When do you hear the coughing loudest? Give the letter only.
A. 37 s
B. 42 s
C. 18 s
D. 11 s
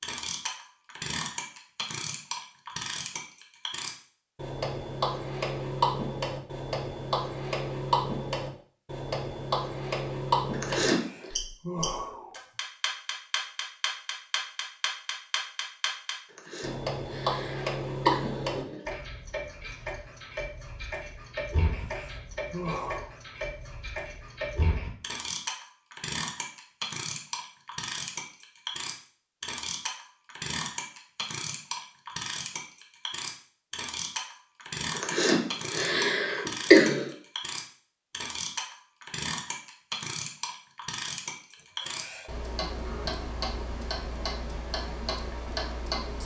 A.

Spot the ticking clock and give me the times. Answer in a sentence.
You can hear the ticking clock from 0.0 to 46.2 s.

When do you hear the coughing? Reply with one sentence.
The coughing can be heard from 10.5 to 11.3 s, from 16.3 to 18.9 s and from 35.0 to 37.1 s.